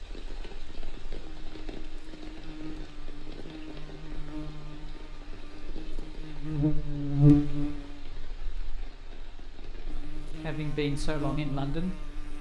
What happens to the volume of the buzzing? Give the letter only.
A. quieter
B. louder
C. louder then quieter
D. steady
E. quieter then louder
C.